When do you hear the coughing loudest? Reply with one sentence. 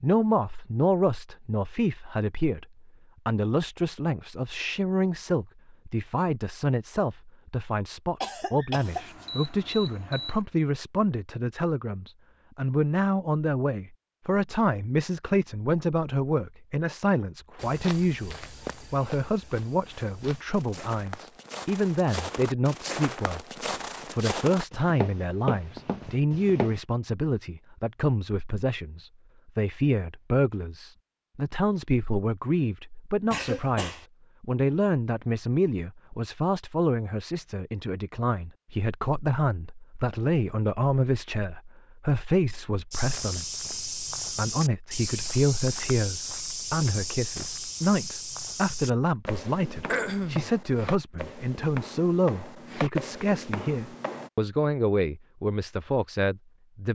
The loudest moment of the coughing is at 50 seconds.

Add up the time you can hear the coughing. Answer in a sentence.
The coughing can be heard for 2 seconds in total.